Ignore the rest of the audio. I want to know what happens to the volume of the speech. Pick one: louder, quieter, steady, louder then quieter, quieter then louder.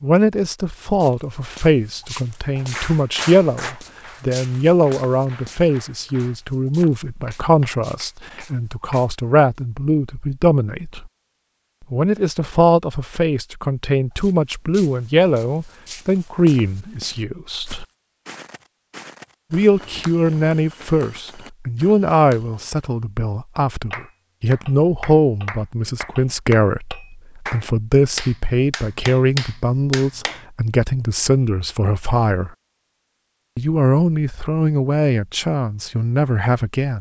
steady.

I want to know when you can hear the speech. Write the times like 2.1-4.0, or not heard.
0.0-11.1, 11.9-17.9, 19.5-32.5, 33.5-36.9.